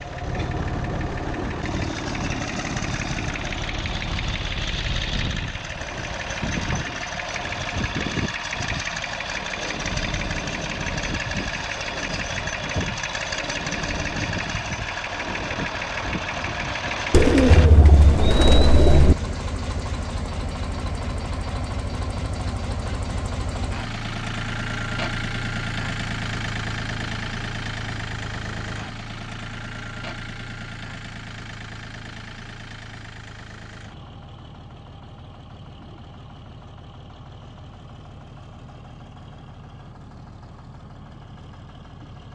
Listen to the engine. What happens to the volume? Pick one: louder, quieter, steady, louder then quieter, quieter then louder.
quieter.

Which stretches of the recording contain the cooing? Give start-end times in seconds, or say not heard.
17.1-19.1.